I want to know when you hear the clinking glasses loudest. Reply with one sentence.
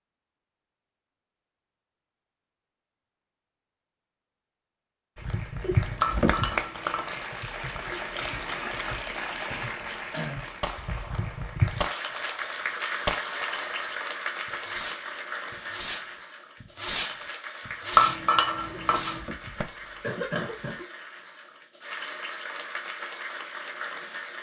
The loudest moment of the clinking glasses is at 18 seconds.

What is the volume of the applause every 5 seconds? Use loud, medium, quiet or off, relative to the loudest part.
off, loud, loud, medium, medium.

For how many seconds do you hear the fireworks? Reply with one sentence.
You can hear the fireworks for 9 seconds altogether.